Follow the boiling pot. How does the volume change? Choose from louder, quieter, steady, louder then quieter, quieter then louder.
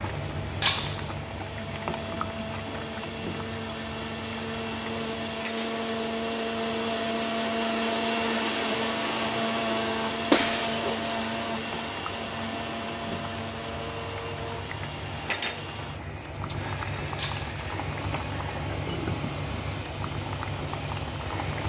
quieter then louder.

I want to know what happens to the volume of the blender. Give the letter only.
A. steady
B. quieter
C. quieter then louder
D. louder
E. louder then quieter
E.